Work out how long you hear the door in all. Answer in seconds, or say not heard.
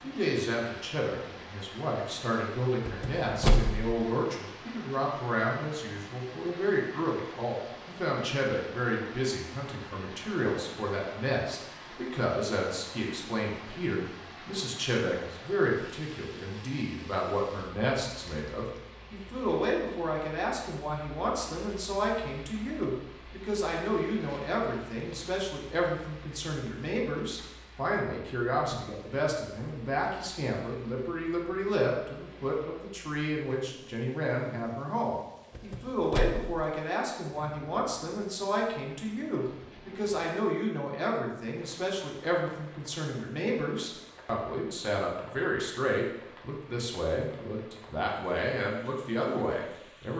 2 s.